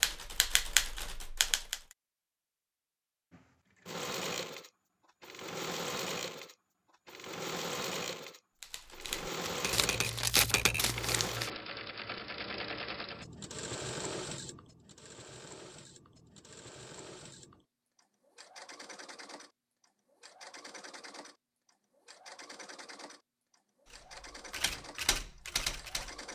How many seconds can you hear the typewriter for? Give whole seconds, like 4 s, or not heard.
6 s.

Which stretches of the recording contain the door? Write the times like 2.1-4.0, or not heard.
not heard.